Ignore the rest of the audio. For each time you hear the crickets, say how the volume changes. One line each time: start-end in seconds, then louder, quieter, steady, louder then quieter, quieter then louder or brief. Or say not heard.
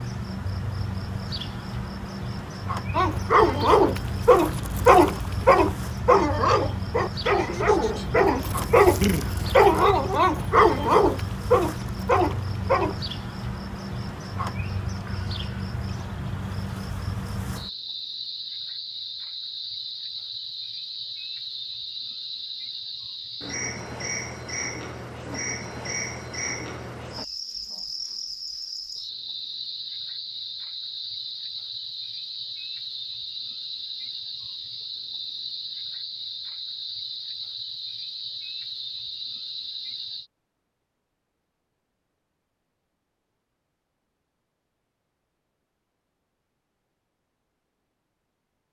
0.0-40.2 steady.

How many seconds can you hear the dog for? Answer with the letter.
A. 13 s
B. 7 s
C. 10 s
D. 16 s
C.